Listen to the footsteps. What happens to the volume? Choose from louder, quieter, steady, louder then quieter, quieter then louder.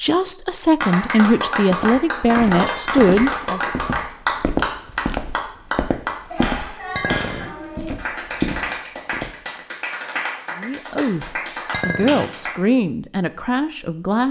steady.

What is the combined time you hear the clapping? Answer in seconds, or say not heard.
12 s.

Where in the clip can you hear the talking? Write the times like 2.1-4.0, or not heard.
0.0-3.7, 10.6-14.2.